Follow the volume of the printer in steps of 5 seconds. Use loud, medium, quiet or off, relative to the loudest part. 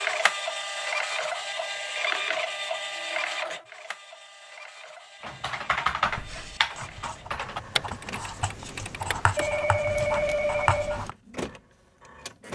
loud, quiet, medium.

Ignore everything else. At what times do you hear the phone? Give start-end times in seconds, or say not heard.
9.3-11.1.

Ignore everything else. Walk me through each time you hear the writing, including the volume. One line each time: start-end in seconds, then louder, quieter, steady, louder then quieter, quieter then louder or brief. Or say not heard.
6.0-11.2 louder.